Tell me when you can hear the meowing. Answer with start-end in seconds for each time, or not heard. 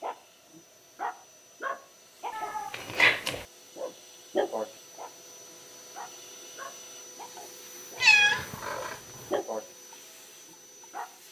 2.3-3.5, 8.0-9.3.